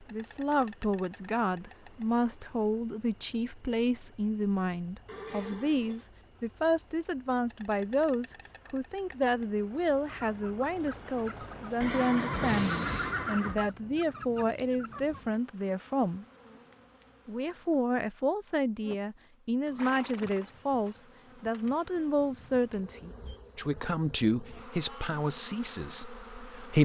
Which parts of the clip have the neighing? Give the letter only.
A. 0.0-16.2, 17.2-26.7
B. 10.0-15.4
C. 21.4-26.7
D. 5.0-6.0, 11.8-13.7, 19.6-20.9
D.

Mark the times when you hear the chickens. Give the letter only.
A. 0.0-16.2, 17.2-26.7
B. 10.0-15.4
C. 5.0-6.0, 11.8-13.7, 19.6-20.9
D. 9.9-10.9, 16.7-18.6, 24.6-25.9
B.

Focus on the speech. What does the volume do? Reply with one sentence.
The volume of the speech stays about the same.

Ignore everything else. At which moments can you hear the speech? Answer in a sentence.
The speech can be heard from 0.0 to 16.2 s and from 17.2 to 26.7 s.